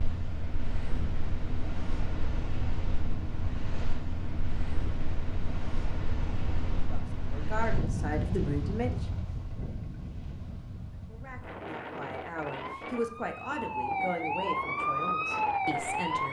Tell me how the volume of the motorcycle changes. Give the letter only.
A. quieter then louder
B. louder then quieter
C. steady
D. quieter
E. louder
D.